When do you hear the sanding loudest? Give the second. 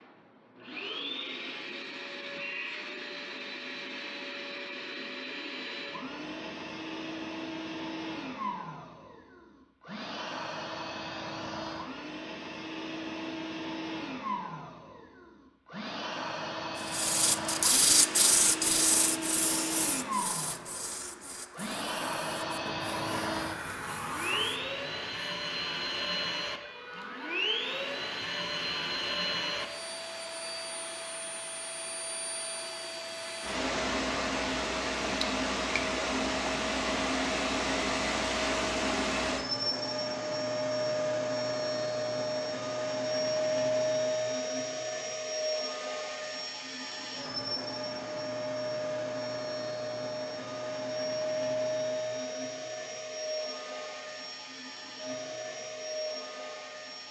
18 s.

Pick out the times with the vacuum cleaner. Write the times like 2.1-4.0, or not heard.
0.0-57.0.